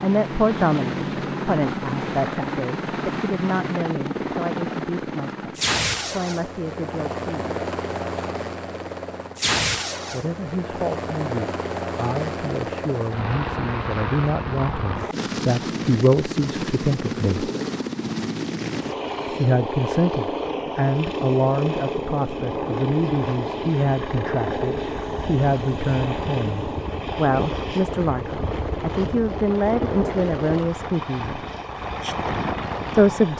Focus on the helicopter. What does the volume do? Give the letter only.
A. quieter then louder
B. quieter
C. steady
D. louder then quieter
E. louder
C.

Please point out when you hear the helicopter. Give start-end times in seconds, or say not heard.
0.0-33.3.